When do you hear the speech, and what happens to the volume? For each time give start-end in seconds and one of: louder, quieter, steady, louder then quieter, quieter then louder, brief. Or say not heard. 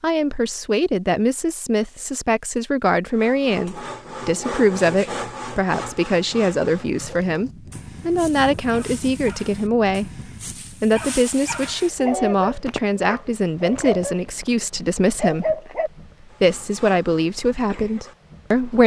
0.0-10.1 steady
10.8-15.6 steady
16.4-18.8 brief.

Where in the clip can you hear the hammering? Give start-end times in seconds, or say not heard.
not heard.